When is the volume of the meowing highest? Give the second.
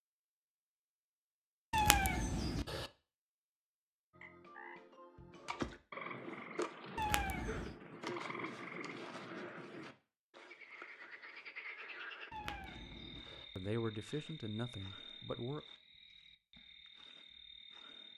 2 s.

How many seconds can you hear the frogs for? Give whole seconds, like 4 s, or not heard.
14 s.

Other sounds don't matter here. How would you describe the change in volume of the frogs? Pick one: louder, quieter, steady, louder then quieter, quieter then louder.
quieter.